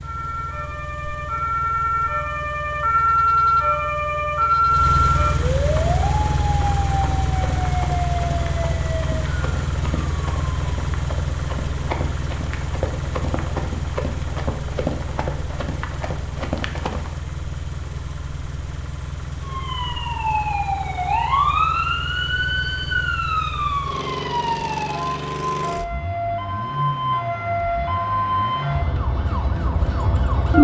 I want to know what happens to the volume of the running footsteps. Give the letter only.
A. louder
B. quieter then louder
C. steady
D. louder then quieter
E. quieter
A.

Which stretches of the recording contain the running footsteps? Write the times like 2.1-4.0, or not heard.
5.7-17.2.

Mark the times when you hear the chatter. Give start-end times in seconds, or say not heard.
not heard.